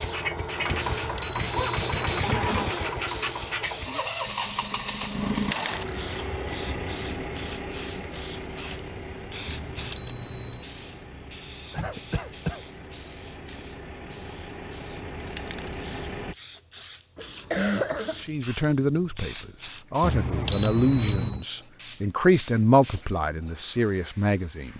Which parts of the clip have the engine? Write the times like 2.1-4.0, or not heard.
0.0-16.4.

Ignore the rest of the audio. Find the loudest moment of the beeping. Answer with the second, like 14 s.
21 s.